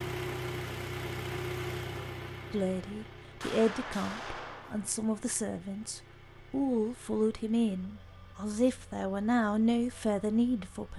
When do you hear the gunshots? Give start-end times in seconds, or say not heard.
3.4-5.0.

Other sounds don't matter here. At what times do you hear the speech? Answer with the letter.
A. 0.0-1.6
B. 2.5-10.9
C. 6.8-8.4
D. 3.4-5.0
B.